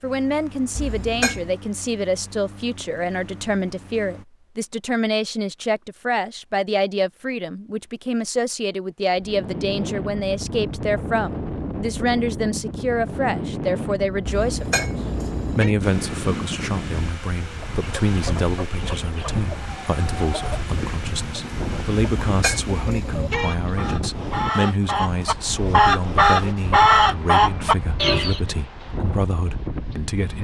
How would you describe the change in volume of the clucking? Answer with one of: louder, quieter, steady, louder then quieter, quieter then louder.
louder.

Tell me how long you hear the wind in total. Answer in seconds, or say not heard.
21 s.